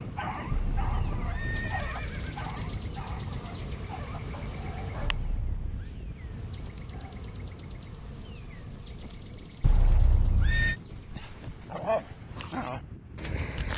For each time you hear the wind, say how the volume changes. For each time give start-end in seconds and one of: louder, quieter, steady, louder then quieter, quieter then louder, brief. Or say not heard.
0.0-13.7 quieter.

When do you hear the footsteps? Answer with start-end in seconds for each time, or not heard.
not heard.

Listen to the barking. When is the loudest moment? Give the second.
12 s.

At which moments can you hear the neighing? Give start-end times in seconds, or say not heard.
0.5-2.5, 5.0-5.9, 9.6-10.8.